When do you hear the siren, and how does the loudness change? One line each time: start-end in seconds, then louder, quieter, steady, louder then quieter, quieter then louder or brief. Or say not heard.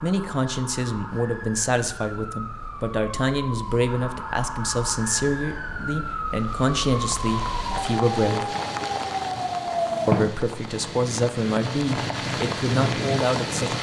0.0-10.3 louder.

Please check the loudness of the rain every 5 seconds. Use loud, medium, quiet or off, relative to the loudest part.
off, medium, loud.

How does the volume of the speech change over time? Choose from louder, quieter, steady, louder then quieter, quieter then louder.
steady.